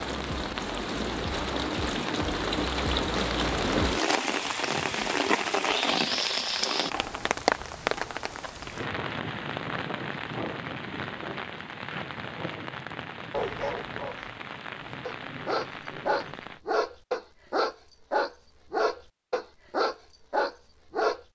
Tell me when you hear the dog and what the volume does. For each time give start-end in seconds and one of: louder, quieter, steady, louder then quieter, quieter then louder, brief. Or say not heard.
13.3-21.2 louder.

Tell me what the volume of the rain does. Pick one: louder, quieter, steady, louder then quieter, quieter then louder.
quieter.